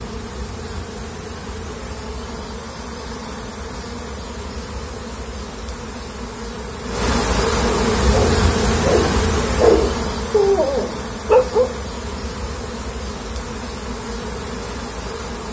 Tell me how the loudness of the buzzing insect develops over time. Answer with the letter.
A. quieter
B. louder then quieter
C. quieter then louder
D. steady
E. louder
B.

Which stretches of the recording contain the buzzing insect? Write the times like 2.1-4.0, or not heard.
0.0-15.4.